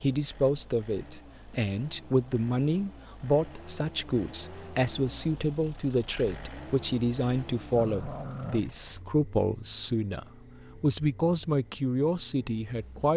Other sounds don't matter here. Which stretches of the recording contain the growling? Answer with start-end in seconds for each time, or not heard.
7.8-8.8.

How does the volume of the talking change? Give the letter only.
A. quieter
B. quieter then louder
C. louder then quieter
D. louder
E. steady
E.